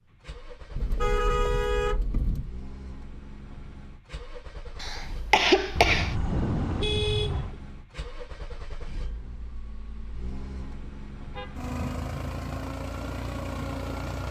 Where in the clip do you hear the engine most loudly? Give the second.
12 s.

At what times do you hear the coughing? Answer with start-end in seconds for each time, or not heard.
4.8-6.2.